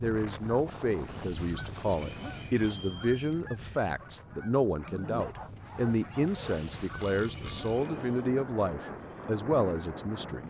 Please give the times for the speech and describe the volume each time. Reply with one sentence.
The speech can be heard from 0.0 to 10.4 s, at a steady volume.